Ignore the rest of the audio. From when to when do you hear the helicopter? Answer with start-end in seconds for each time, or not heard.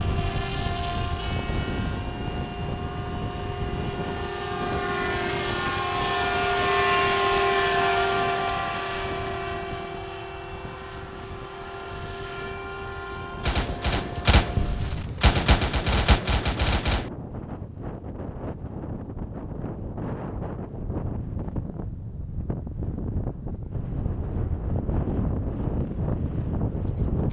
0.0-14.9.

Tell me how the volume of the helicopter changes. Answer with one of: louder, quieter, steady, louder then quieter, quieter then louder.
louder then quieter.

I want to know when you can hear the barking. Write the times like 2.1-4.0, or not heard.
not heard.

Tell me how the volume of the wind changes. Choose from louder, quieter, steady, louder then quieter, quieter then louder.
quieter then louder.